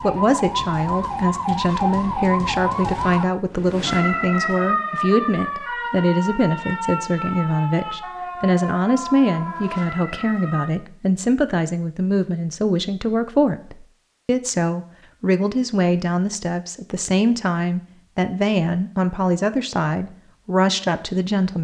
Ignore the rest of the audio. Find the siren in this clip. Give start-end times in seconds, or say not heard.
0.0-10.7.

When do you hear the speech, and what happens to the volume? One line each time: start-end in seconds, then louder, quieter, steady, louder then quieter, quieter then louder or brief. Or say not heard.
0.0-21.5 steady.